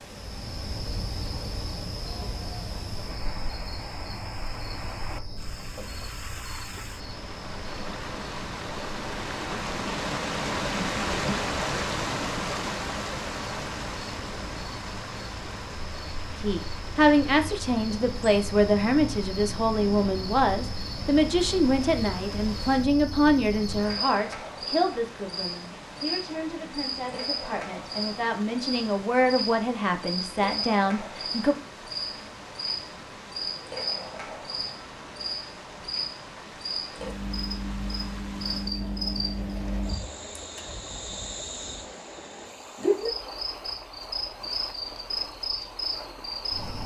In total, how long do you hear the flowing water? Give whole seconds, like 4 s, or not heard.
47 s.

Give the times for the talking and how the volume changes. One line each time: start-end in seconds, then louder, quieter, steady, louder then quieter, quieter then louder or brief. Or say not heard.
16.4-31.6 quieter then louder.